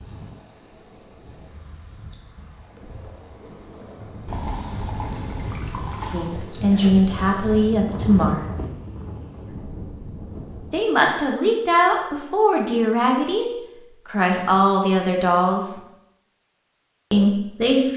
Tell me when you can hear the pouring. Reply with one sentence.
You can hear the pouring from 4.2 to 6.3 s.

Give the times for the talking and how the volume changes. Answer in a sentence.
You can hear the talking briefly from 6.1 to 8.5 s; from 10.7 to 15.8 s, at a steady volume; and briefly from 17.1 to 17.9 s.